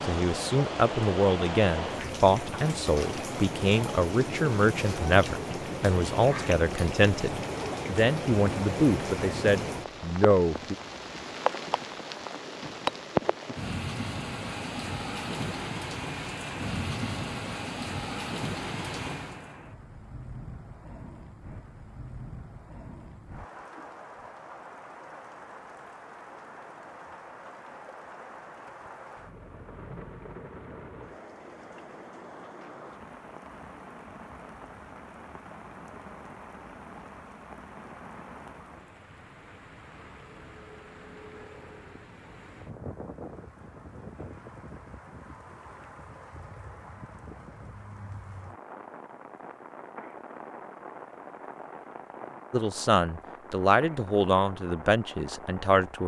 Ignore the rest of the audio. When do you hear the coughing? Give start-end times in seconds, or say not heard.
not heard.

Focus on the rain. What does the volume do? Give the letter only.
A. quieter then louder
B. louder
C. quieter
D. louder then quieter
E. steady
C.